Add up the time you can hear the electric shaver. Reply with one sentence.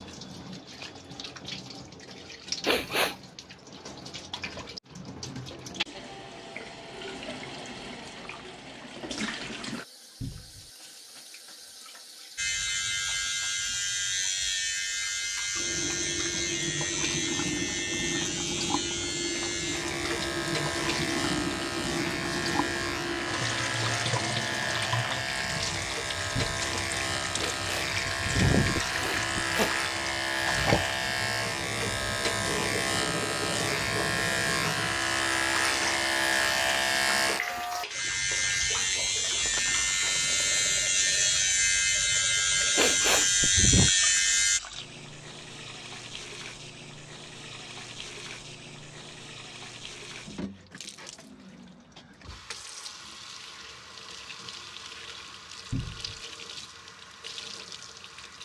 The electric shaver can be heard for 32 seconds in total.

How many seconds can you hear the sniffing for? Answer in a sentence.
You can hear the sniffing for 4 seconds altogether.